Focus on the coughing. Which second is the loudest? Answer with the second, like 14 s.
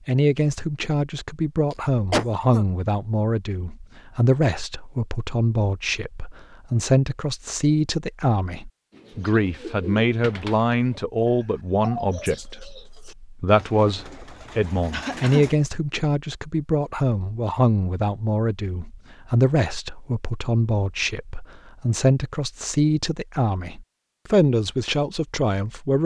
2 s.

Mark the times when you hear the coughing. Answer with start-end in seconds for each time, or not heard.
1.7-2.6, 14.9-15.4.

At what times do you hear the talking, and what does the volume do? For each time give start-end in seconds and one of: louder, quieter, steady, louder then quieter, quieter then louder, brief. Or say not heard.
0.1-26.0 steady.